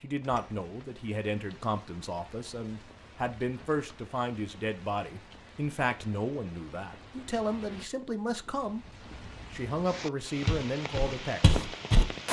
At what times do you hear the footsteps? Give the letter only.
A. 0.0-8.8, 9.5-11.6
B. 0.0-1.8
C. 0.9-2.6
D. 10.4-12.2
D.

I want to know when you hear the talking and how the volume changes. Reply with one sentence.
You can hear the talking from 0.0 to 8.8 s, at a steady volume; and briefly from 9.5 to 11.6 s.